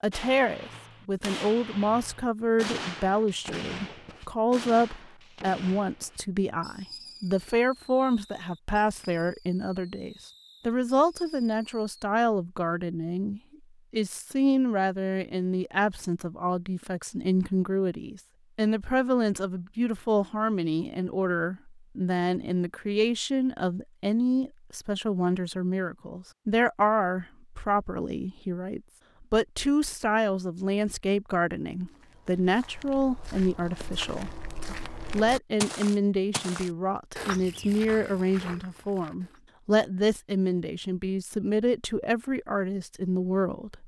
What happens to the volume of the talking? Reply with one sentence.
The loudness of the talking stays about the same.